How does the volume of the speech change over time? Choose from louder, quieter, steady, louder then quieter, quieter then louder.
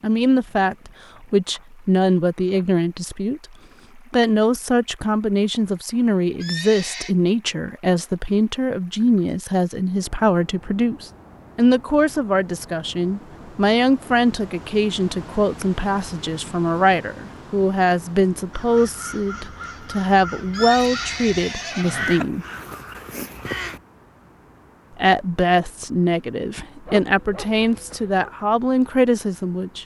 steady.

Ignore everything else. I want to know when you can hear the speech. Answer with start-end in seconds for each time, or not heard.
0.0-22.4, 24.9-29.8.